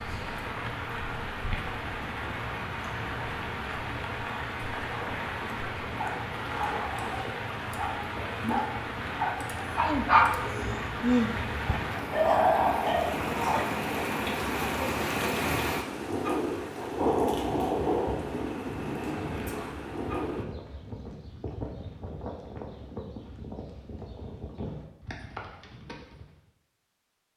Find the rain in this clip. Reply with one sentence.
The rain can be heard from 0.0 to 20.4 s.